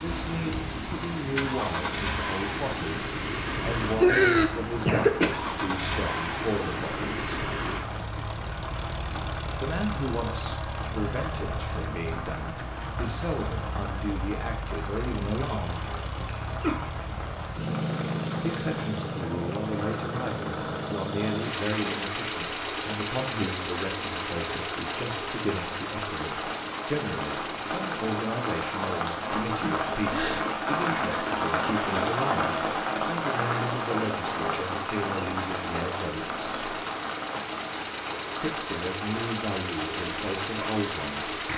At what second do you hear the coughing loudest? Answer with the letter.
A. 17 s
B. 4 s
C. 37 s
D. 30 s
B.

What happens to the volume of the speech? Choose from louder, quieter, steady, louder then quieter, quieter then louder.
steady.